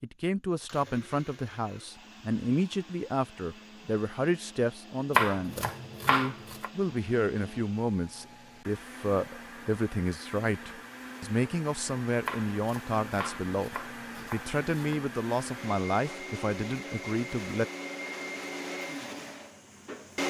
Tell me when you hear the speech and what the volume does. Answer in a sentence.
You can hear the speech from 0.0 to 17.6 s, at a steady volume.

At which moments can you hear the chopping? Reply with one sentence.
The chopping can be heard from 5.1 to 6.7 s and from 12.2 to 15.0 s.